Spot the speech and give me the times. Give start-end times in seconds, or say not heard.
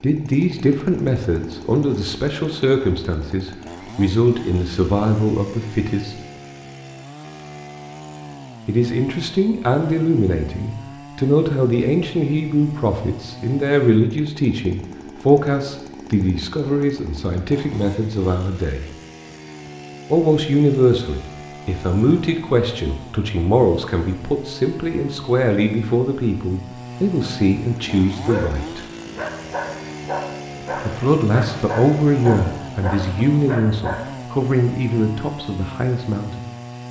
0.0-6.2, 8.7-18.9, 20.1-28.9, 30.9-36.4.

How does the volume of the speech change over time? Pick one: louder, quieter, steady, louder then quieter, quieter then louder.
steady.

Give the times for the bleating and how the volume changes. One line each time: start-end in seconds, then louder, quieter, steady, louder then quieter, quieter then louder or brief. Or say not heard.
not heard.